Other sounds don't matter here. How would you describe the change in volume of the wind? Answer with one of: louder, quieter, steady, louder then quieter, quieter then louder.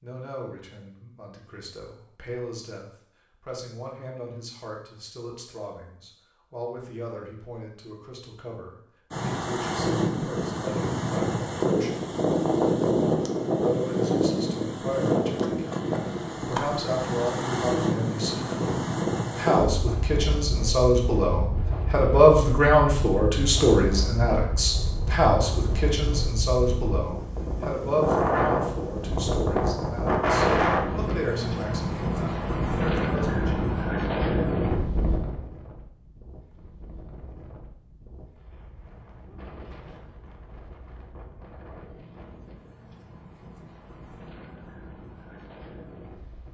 quieter.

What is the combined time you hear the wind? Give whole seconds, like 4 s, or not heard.
37 s.